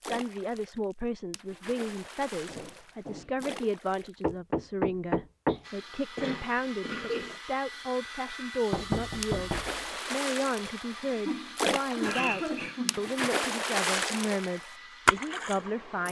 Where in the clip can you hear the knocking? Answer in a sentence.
The knocking can be heard from 4.2 to 5.6 s and from 8.7 to 9.8 s.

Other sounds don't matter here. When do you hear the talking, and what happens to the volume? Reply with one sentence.
The talking can be heard from 0.0 to 9.5 s, at a steady volume; and from 10.1 to 16.0 s, at a steady volume.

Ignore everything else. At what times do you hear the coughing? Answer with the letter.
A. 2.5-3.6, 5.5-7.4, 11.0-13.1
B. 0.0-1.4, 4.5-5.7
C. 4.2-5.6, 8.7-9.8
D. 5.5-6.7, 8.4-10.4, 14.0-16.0
A.